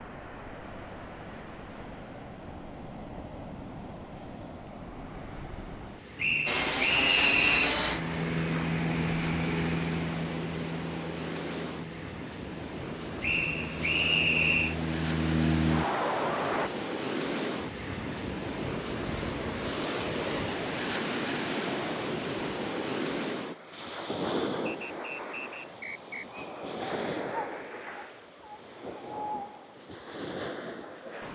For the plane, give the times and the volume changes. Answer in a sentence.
You can hear the plane from 6.5 to 16.7 s, getting quieter then louder.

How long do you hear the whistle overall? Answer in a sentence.
You can hear the whistle for 5 seconds altogether.